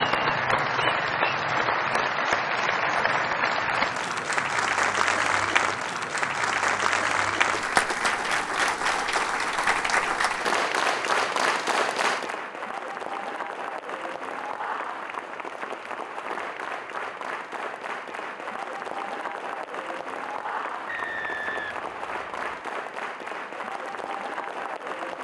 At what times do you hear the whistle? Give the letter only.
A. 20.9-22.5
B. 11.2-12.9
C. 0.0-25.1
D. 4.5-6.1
A.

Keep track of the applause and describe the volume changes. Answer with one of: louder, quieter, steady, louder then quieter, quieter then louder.
quieter.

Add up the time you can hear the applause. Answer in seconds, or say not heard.
25 s.